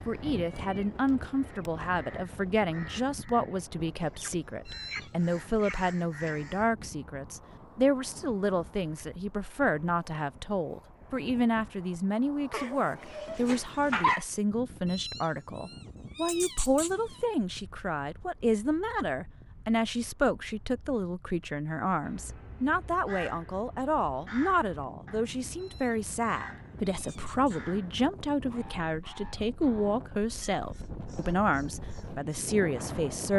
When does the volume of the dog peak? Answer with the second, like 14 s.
14 s.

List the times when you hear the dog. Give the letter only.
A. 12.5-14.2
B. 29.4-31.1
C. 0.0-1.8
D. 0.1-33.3
A.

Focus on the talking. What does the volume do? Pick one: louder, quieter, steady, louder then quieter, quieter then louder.
steady.